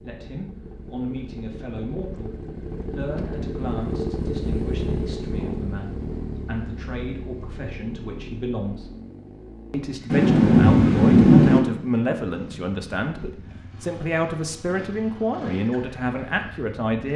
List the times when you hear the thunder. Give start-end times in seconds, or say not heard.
10.1-11.6.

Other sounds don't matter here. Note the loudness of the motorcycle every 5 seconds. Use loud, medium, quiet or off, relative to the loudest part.
loud, loud, medium, medium.